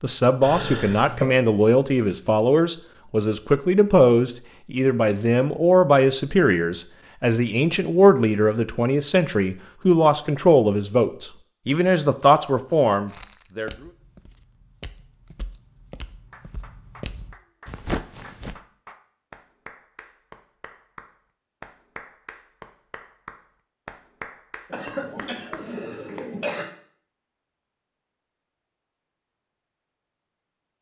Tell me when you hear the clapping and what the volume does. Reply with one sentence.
You can hear the clapping from 16.3 to 26.5 s, getting louder.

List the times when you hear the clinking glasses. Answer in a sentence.
The clinking glasses can't be heard in this clip.